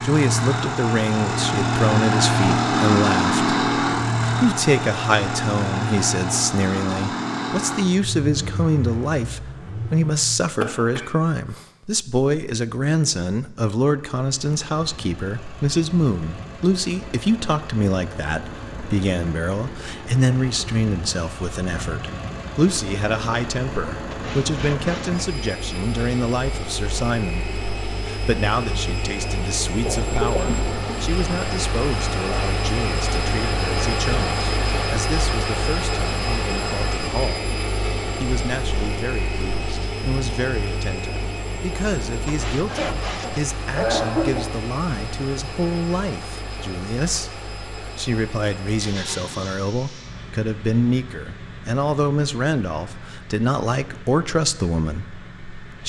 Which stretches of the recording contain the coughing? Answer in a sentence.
The coughing can be heard from 10.6 to 11.7 s, from 29.9 to 31.1 s and from 42.6 to 44.6 s.